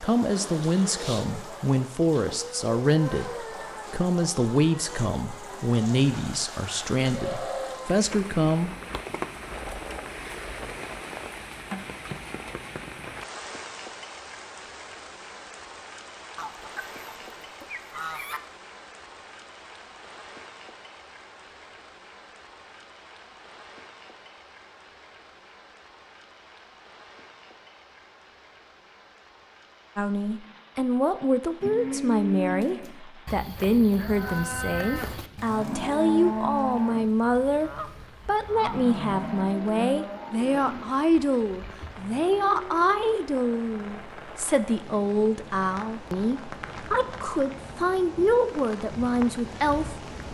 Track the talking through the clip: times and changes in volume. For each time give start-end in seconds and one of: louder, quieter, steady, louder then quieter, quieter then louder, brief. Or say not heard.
0.0-8.8 steady
29.9-50.3 steady.